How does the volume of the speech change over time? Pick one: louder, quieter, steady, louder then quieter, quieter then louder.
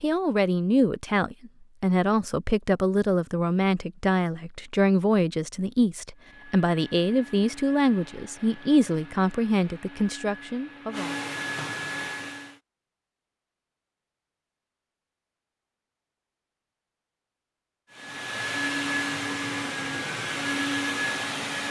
steady.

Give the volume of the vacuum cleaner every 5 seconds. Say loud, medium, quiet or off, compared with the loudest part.
off, quiet, medium, loud, loud.